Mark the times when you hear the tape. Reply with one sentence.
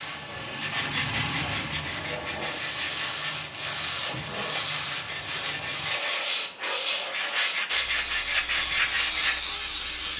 The tape can't be heard in this clip.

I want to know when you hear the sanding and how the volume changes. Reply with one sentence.
You can hear the sanding from 0.6 to 9.4 s, getting louder.